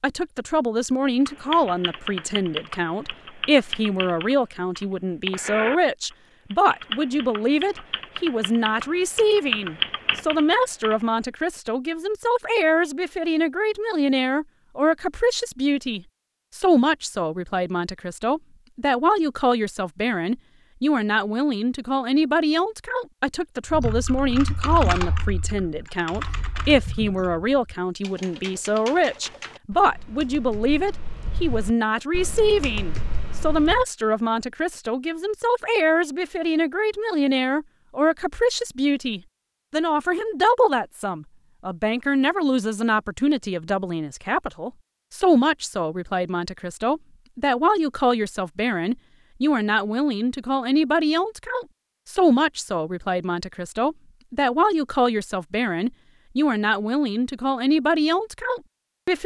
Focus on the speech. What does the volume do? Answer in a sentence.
The volume of the speech stays about the same.